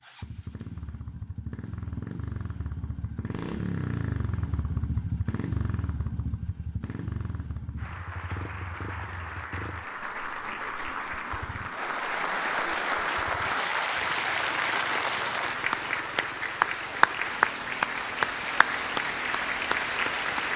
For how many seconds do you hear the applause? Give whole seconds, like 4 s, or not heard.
13 s.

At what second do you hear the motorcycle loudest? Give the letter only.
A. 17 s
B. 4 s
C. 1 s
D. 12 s
B.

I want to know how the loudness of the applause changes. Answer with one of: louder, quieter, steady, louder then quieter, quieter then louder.
louder.